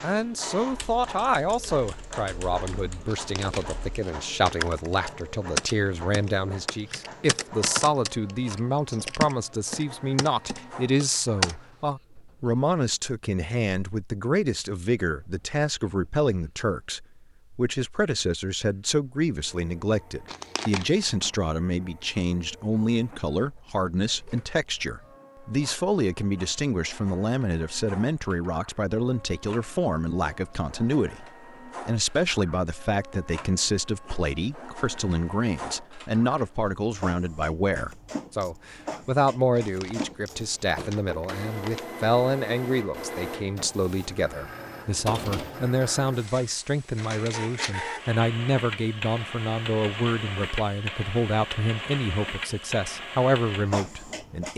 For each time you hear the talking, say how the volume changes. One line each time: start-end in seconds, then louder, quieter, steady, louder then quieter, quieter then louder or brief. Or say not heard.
0.0-54.5 steady.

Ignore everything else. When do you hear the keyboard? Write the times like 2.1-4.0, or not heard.
0.7-11.6.